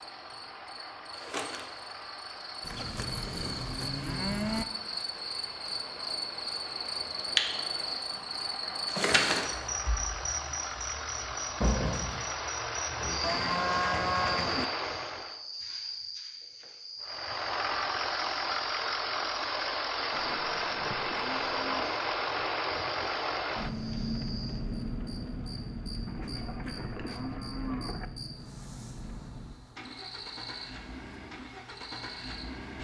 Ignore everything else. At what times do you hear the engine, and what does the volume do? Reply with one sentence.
You can hear the engine from 0.0 to 15.4 s, getting louder; and from 17.0 to 32.7 s, getting quieter.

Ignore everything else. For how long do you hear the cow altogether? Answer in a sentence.
The cow can be heard for 7 seconds in total.